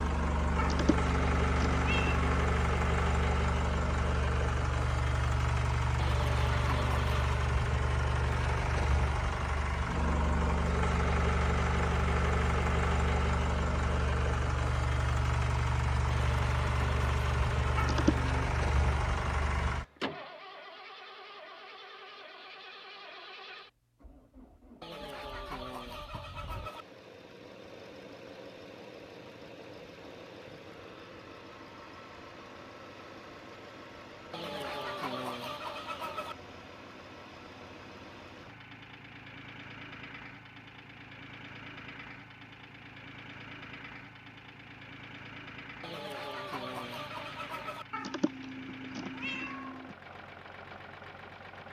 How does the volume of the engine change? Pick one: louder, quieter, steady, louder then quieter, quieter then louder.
quieter.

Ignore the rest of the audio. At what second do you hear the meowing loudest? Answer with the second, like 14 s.
18 s.